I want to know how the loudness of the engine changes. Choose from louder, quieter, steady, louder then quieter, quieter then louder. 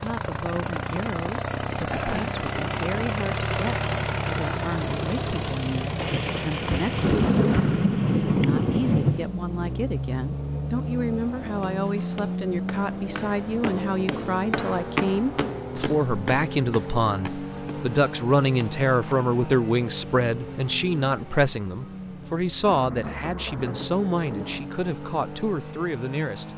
quieter.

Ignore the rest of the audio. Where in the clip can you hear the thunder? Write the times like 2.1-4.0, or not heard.
6.0-9.3, 22.6-24.7.